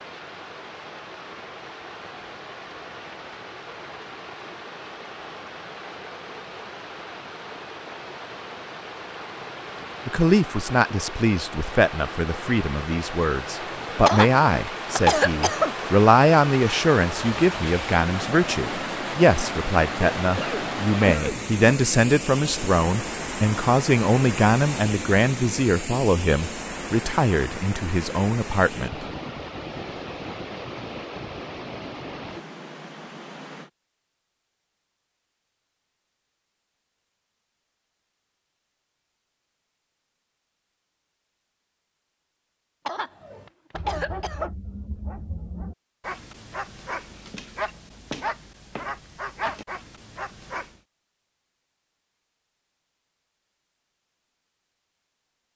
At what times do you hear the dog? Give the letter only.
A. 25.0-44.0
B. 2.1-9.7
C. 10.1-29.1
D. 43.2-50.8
D.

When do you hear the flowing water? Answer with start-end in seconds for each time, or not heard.
0.0-33.7.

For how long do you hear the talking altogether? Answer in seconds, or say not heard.
19 s.